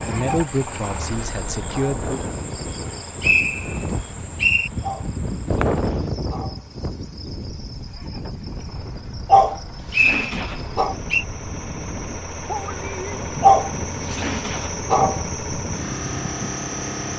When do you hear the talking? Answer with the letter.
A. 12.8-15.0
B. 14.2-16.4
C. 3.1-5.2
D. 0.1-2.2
D.